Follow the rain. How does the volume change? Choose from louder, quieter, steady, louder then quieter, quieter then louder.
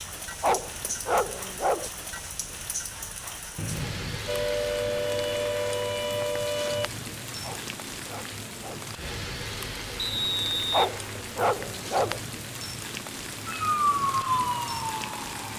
steady.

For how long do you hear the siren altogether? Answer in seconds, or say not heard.
5 s.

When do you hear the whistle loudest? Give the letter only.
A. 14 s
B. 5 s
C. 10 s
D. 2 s
C.